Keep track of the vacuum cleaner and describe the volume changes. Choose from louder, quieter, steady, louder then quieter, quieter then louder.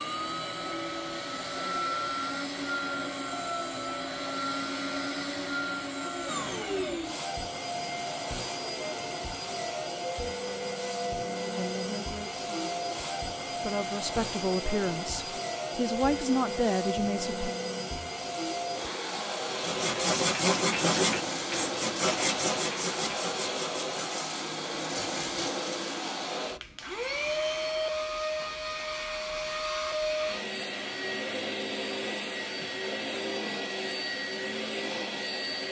steady.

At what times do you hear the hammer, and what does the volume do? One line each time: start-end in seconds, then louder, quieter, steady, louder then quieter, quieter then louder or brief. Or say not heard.
not heard.